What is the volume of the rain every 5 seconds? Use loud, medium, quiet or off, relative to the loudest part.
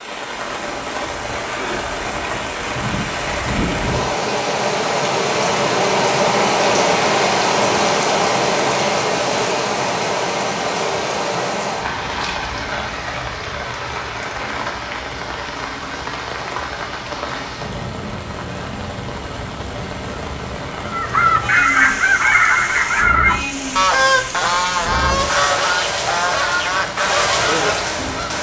medium, loud, medium, medium, medium, medium.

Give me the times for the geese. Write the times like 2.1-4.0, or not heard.
20.8-28.3.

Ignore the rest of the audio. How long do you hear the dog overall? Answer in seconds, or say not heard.
not heard.